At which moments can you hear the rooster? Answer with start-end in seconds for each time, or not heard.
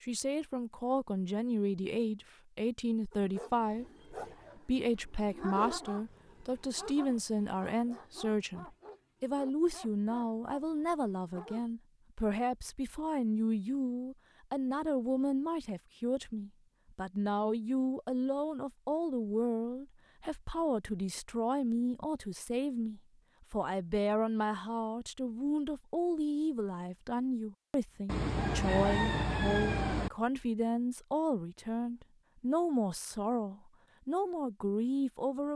28.1-30.1.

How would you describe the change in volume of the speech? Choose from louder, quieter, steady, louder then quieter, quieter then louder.
steady.